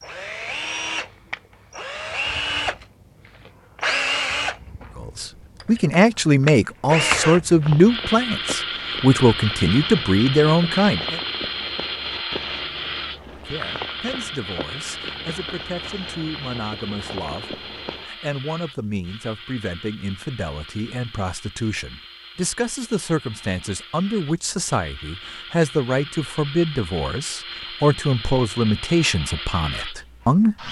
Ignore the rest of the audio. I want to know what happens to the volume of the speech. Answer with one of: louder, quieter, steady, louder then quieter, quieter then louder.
quieter then louder.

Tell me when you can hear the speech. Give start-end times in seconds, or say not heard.
5.0-11.2, 13.3-30.6.